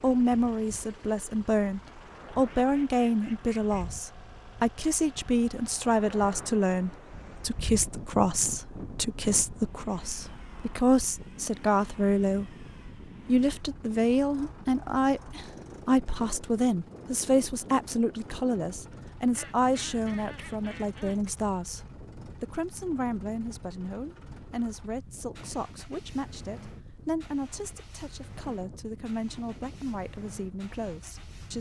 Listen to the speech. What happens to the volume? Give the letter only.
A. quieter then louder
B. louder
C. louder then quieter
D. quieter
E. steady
D.